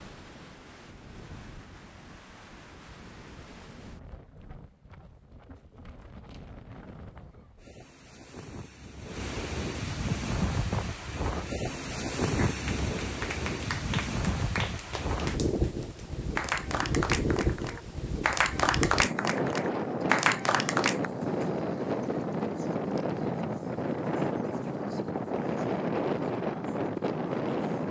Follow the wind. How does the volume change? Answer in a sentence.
The volume of the wind goes up.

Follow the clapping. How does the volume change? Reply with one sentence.
The volume of the clapping goes up.